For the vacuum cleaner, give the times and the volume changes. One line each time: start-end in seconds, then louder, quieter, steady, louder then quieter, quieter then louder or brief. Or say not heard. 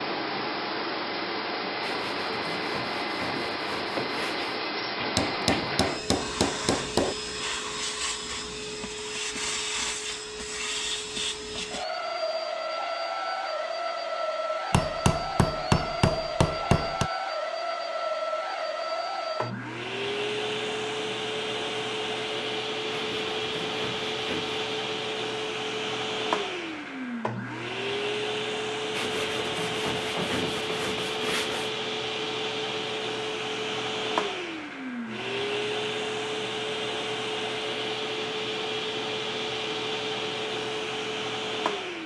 0.0-42.0 steady.